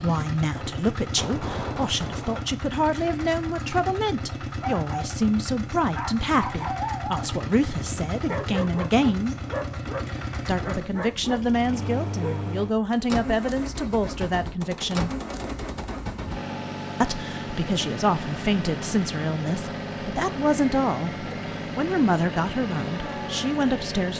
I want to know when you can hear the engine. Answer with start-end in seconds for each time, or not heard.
0.0-24.1.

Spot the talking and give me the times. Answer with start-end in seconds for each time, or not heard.
0.0-9.3, 10.4-15.1, 17.0-24.1.